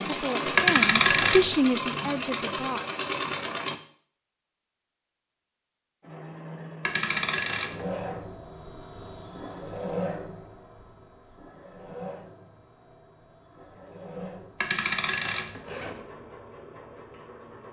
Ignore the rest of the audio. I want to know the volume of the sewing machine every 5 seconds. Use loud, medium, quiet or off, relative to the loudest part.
loud, medium, quiet, quiet.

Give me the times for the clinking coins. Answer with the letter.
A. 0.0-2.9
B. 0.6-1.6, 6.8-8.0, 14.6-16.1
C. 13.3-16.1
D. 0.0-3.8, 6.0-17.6
B.